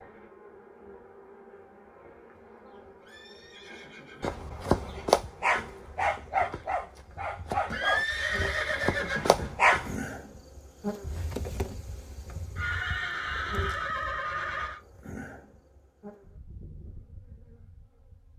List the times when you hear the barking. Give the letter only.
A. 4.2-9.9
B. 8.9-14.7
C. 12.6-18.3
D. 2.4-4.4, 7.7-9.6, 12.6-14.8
A.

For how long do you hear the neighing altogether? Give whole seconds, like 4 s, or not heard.
6 s.